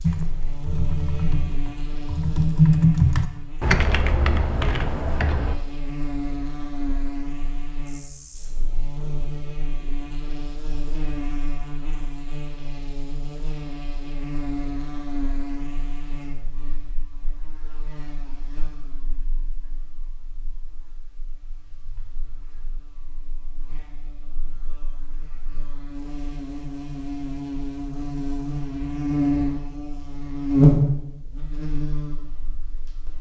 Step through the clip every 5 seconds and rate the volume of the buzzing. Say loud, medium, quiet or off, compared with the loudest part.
quiet, quiet, quiet, quiet, quiet, medium, loud.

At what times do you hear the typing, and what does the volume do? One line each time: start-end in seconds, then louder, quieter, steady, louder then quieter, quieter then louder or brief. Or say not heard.
0.0-5.5 louder then quieter.